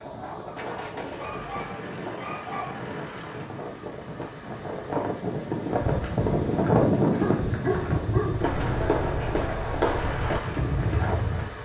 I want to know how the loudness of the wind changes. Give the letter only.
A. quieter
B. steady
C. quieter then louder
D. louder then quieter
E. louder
D.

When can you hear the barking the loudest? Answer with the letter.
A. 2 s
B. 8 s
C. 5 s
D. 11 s
B.